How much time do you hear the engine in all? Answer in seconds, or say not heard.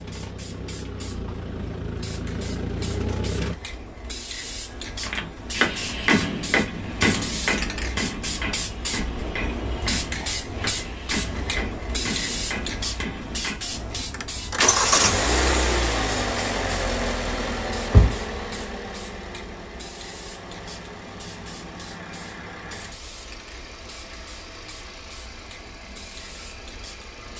17 s.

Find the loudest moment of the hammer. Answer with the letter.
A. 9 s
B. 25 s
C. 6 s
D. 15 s
C.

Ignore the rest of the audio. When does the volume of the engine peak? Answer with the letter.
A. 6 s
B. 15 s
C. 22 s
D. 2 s
B.